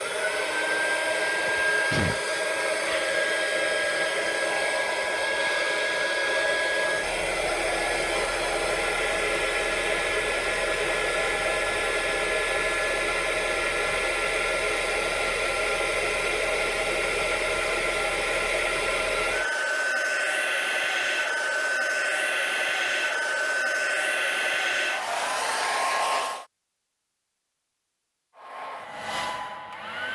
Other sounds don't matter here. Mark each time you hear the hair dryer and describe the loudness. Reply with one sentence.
You can hear the hair dryer from 0.0 to 26.4 s, at a steady volume; and briefly from 28.4 to 30.0 s.